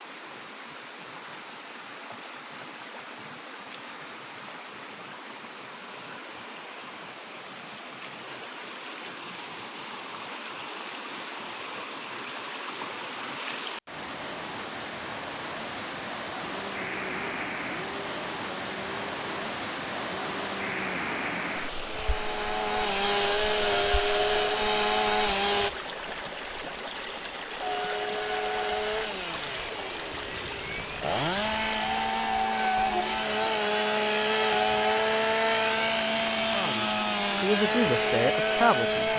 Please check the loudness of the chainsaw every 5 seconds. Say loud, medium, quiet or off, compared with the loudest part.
off, off, off, quiet, loud, loud, loud, loud.